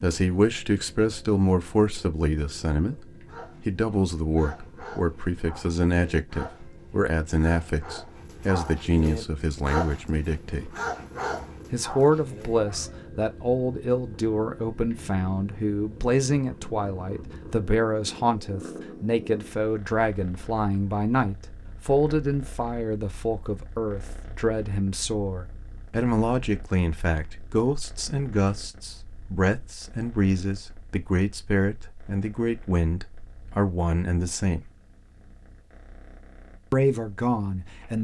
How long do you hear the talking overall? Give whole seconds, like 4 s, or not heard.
35 s.